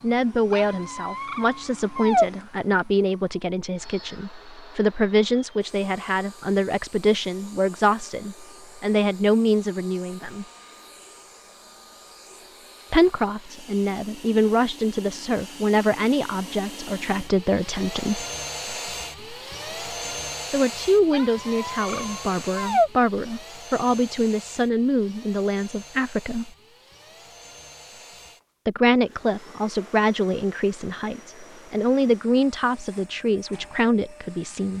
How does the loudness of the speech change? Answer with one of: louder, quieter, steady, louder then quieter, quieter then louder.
steady.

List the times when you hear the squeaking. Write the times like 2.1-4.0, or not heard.
0.5-2.3, 21.1-22.9.